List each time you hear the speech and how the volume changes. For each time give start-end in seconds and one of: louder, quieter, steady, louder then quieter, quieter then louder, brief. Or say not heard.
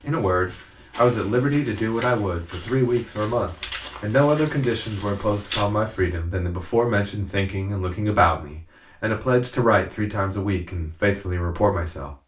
0.0-12.2 steady.